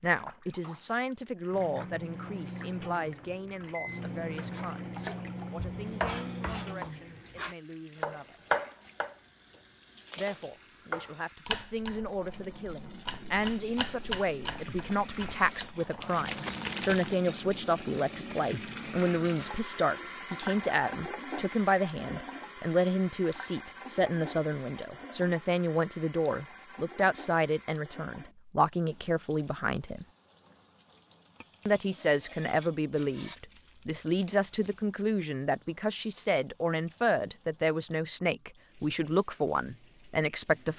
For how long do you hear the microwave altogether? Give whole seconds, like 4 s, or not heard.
6 s.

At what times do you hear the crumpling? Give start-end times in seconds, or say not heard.
16.0-17.1, 33.1-34.9.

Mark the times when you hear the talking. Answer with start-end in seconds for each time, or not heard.
0.0-8.4, 10.2-30.1, 31.6-40.7.